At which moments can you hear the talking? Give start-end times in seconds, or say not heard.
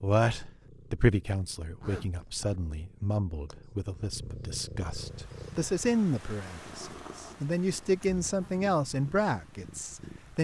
0.0-10.3.